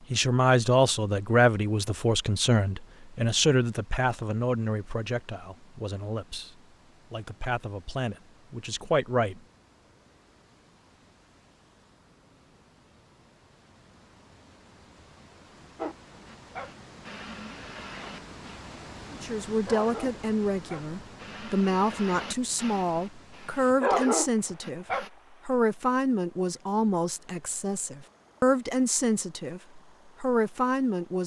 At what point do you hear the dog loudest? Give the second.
24 s.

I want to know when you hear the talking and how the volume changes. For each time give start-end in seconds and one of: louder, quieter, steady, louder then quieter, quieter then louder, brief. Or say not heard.
0.1-9.4 quieter then louder
19.1-31.2 steady.